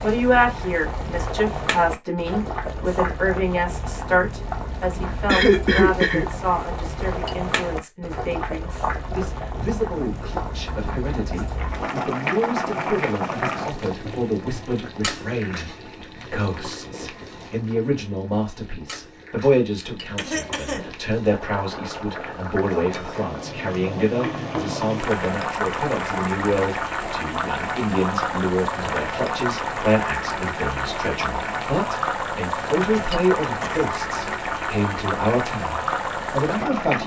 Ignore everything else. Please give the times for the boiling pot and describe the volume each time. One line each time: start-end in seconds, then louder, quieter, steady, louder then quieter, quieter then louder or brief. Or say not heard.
0.0-37.0 quieter then louder.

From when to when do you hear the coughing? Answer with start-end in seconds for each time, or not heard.
5.2-6.2, 19.8-20.9, 32.9-33.9.